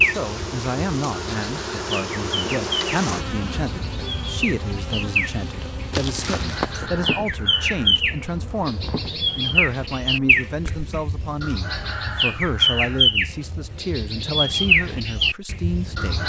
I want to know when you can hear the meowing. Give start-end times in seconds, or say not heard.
5.9-6.7.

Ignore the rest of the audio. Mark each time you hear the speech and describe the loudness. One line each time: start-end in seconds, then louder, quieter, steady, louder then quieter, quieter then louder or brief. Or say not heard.
0.0-16.2 steady.